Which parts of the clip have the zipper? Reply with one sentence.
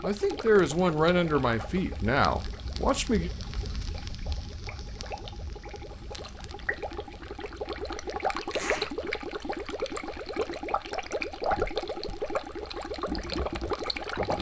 The zipper can be heard from 8.5 to 8.9 s.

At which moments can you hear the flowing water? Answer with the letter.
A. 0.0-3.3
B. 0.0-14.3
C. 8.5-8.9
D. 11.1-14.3
B.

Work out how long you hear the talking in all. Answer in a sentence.
The talking can be heard for 3 seconds in total.